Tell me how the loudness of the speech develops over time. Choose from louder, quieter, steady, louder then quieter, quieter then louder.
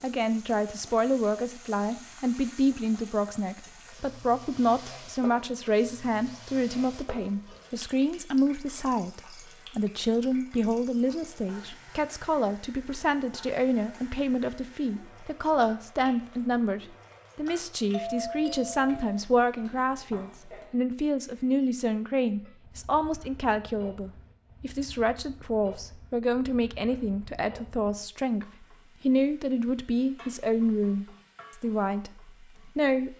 steady.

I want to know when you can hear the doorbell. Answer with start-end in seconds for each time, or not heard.
17.9-19.2.